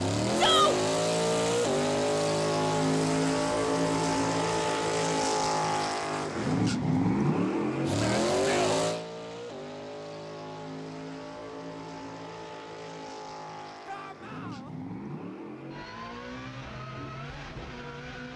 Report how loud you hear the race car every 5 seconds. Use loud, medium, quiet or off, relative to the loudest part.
loud, loud, quiet, quiet.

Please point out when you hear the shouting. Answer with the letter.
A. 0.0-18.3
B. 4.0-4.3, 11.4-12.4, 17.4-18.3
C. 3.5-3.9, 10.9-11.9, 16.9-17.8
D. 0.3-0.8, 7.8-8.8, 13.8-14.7
D.